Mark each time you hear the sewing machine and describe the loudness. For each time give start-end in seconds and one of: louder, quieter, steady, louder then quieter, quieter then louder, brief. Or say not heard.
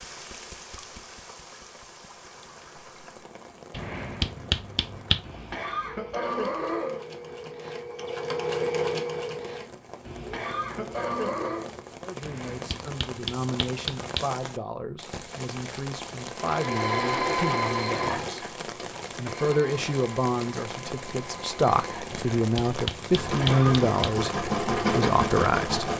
5.8-11.9 louder then quieter
16.4-25.9 quieter then louder.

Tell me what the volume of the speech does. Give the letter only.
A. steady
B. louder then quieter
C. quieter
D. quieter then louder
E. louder
E.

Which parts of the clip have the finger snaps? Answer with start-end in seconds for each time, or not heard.
3.7-5.2, 12.2-14.2, 22.1-24.1.